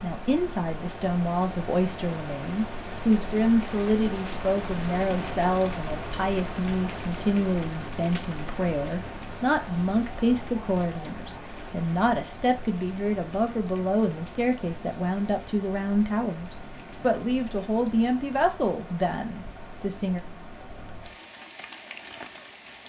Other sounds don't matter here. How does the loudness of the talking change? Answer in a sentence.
The loudness of the talking stays about the same.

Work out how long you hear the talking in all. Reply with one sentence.
You can hear the talking for 20 seconds altogether.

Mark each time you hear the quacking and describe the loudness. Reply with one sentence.
You can't hear the quacking here.